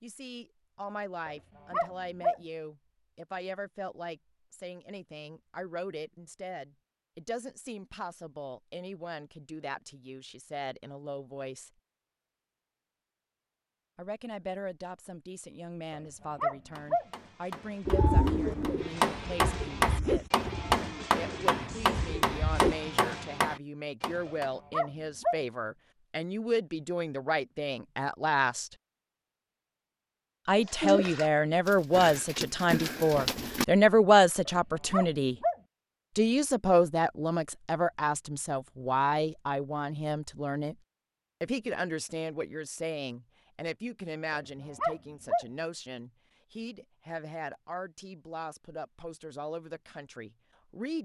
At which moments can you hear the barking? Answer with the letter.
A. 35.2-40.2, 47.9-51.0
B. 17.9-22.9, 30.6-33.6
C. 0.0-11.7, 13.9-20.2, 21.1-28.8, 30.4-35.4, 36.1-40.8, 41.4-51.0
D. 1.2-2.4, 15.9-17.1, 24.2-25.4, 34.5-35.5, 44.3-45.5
D.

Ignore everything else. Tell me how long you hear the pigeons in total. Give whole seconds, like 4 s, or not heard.
8 s.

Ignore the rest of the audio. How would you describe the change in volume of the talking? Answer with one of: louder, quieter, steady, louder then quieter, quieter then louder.
louder then quieter.